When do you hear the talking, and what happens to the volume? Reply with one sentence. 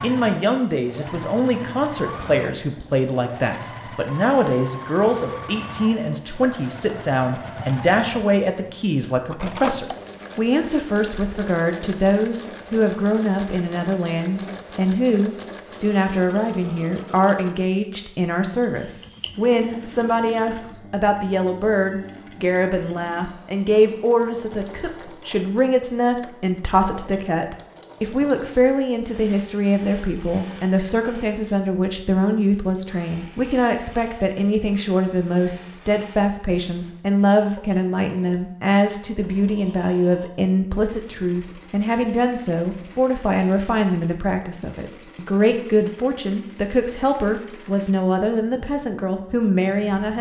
You can hear the talking from 0.0 to 50.1 s, at a steady volume.